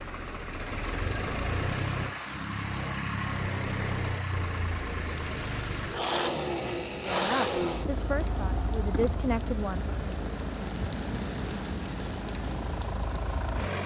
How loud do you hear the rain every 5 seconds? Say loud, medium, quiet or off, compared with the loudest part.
off, medium, loud.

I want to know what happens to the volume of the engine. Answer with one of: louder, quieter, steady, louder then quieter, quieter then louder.
quieter.